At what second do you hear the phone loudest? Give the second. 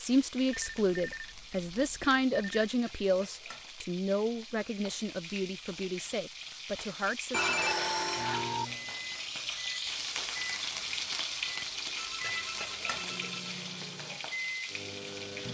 8 s.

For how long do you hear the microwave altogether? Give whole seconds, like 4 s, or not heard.
7 s.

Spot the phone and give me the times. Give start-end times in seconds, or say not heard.
0.5-2.6, 7.3-8.7, 11.6-13.6.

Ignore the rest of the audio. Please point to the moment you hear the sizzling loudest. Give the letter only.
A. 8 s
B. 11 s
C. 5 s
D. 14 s
B.